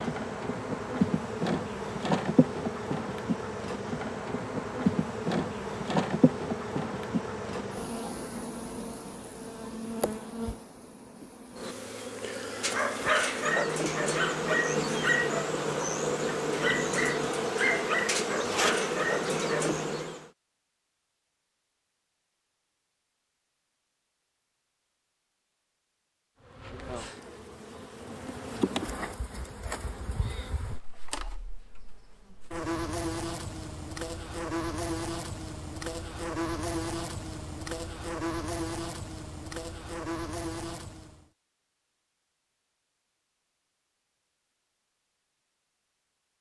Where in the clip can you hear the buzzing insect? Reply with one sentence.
The buzzing insect can be heard from 0.0 to 20.3 s and from 26.4 to 41.2 s.